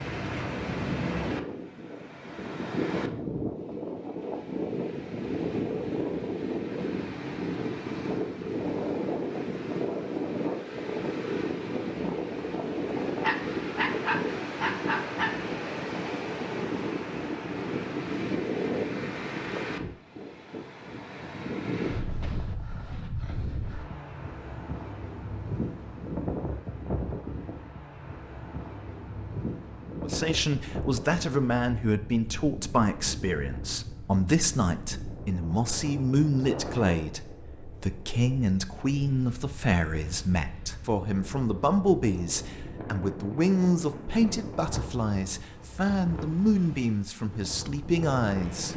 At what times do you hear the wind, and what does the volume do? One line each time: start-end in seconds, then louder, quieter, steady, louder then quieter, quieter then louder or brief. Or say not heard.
0.0-48.7 quieter.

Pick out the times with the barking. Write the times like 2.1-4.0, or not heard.
13.2-15.3.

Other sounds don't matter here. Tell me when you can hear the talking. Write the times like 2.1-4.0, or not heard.
30.0-48.7.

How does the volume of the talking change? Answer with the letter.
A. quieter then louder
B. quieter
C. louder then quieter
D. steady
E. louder
D.